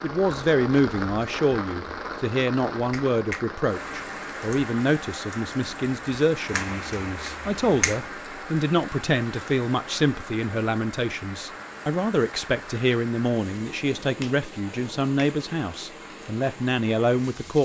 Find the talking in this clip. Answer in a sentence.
The talking can be heard from 0.0 to 17.6 s.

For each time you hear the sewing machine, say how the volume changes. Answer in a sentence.
You can't hear the sewing machine here.